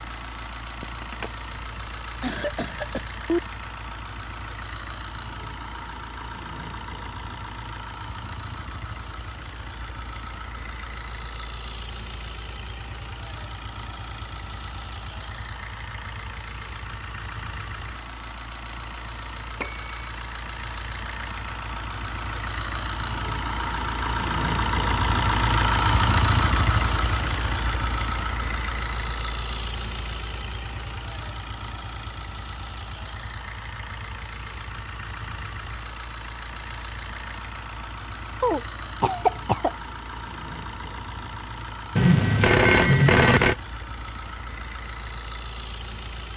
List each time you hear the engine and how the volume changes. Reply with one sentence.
The engine can be heard from 0.0 to 46.3 s, getting louder then quieter.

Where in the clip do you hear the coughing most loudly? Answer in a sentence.
The loudest moment of the coughing is at 39 seconds.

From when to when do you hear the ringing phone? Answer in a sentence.
You can hear the ringing phone from 0.8 to 1.3 s, from 19.6 to 20.1 s and from 42.0 to 43.5 s.